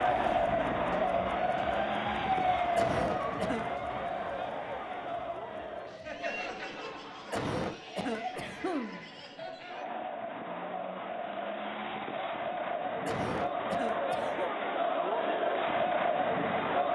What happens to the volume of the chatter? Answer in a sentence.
The volume of the chatter goes down, then up.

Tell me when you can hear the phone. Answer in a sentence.
The phone can't be heard in this clip.